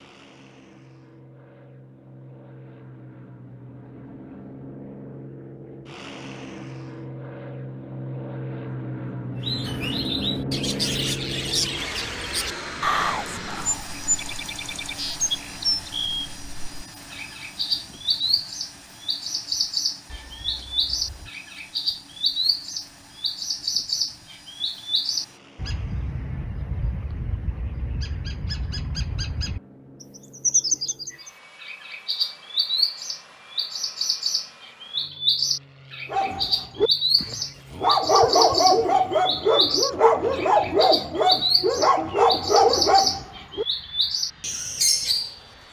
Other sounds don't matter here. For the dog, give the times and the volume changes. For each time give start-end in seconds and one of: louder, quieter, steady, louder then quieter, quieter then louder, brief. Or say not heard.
36.1-43.6 louder.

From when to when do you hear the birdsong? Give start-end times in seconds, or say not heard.
9.4-45.4.